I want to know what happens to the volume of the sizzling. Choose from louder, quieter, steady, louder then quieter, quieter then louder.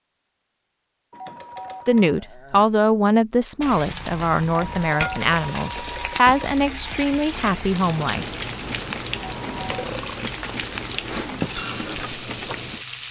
steady.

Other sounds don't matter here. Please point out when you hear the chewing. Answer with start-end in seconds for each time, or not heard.
6.8-12.8.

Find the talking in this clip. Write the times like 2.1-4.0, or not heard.
1.9-8.2.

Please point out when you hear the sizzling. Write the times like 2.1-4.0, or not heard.
3.6-13.0.